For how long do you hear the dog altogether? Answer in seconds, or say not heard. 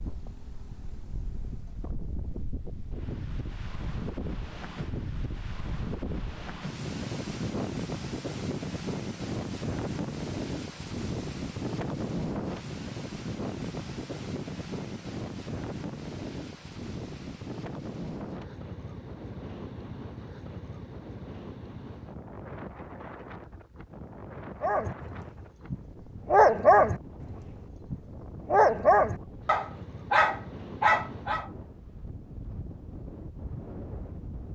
7 s.